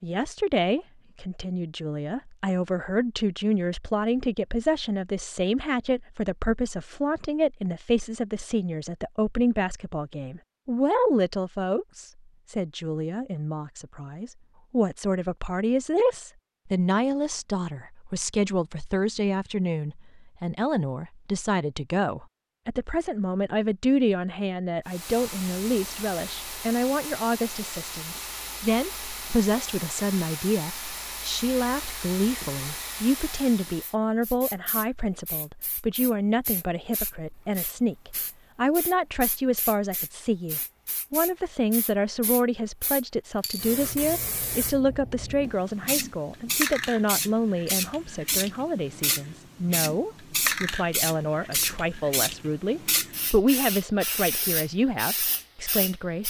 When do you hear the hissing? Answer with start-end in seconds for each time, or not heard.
24.9-56.2.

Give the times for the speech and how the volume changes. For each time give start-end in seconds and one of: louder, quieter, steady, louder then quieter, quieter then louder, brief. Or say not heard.
0.0-56.2 steady.